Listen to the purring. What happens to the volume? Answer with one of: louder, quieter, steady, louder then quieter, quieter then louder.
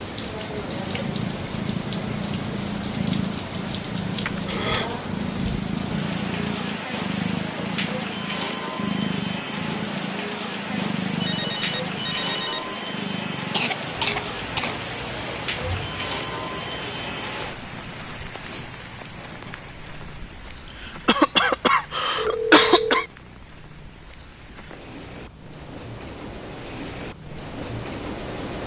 quieter.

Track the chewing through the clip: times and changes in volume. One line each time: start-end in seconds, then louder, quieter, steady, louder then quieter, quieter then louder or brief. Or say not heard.
not heard.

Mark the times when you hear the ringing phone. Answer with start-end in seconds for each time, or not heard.
11.2-12.7, 22.1-23.1.